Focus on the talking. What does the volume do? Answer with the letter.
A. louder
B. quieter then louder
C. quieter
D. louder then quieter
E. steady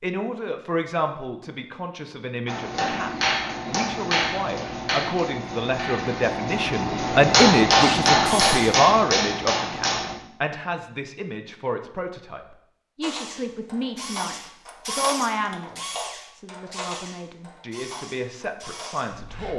D.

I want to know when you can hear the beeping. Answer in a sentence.
The beeping can't be heard in this clip.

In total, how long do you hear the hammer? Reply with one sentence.
The hammer can be heard for 8 seconds in total.